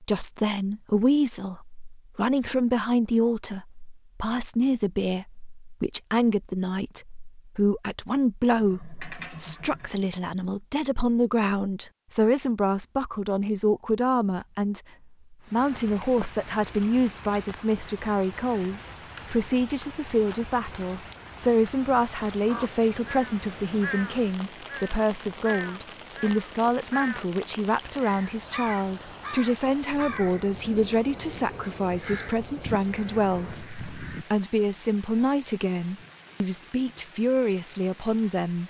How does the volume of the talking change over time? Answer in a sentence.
The loudness of the talking stays about the same.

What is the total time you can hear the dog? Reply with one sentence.
You can't hear the dog here.